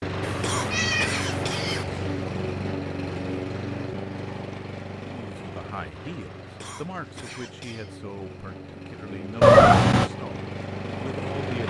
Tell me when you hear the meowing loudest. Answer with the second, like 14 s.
10 s.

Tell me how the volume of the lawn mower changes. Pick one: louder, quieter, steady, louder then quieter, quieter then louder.
quieter then louder.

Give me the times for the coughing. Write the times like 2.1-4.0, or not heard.
0.4-2.0, 6.5-7.9.